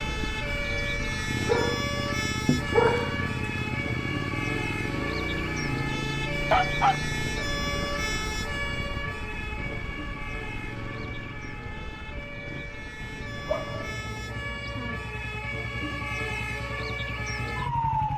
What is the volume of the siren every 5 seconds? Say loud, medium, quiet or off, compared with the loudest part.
loud, loud, medium, loud.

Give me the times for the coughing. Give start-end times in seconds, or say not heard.
not heard.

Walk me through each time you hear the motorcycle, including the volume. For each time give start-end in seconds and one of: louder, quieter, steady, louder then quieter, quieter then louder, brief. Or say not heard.
0.0-18.1 quieter.